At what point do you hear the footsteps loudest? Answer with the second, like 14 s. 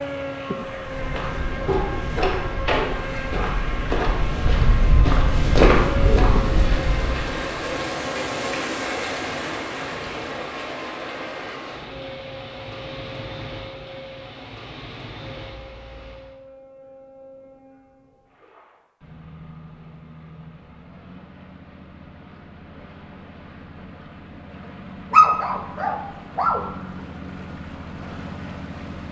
6 s.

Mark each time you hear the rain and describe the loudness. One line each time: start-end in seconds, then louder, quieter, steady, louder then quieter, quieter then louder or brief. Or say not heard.
0.0-16.4 louder then quieter.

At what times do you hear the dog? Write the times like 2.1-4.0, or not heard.
1.6-3.6, 25.1-26.6.